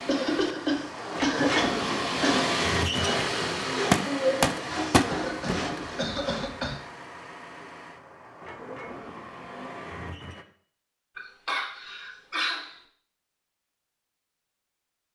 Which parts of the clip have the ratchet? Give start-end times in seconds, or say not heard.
not heard.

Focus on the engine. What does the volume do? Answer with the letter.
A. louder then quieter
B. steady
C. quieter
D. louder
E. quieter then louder
C.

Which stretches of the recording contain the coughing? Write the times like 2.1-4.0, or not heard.
0.1-2.5, 5.1-6.8, 11.2-12.8.